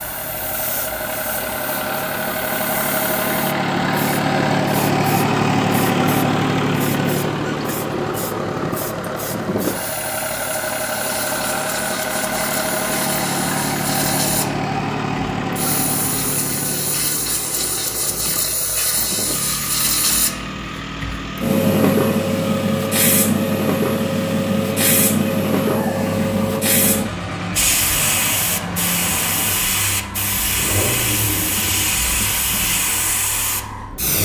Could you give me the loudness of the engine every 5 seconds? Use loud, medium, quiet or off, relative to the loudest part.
loud, loud, loud, medium, medium, medium, medium.